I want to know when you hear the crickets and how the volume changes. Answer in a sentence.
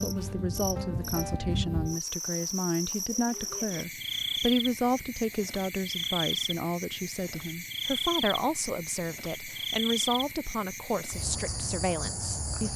The crickets can be heard from 0.0 to 12.7 s, at a steady volume.